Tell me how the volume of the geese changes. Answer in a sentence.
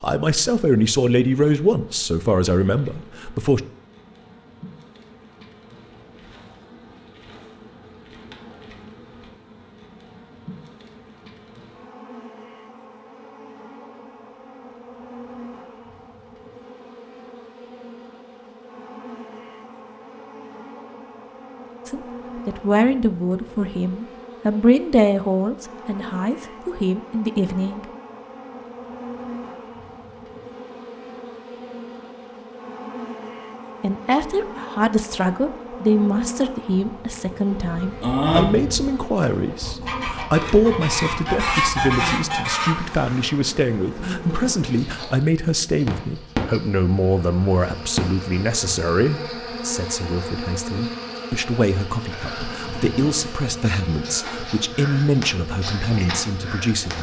The volume of the geese goes down, then up.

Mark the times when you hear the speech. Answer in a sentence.
You can hear the speech from 0.0 to 3.6 s, from 21.9 to 27.9 s and from 33.8 to 56.9 s.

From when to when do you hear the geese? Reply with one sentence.
You can hear the geese from 37.8 to 42.8 s.